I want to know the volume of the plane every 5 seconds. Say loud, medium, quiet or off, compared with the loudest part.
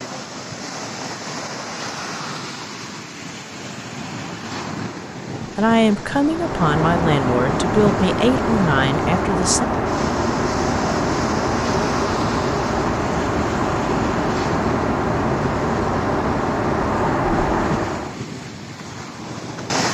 off, loud, loud, loud.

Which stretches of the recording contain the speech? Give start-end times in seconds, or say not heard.
5.5-9.7.